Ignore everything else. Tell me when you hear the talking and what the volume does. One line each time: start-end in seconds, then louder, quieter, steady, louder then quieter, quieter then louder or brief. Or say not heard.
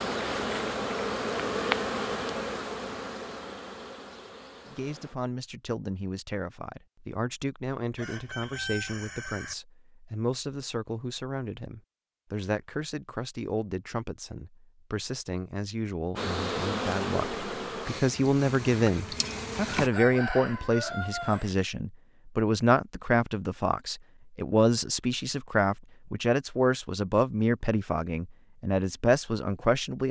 4.7-30.0 louder.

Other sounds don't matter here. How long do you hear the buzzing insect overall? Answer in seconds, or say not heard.
9 s.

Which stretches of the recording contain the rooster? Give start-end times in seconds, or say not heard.
8.0-9.6, 19.7-21.6.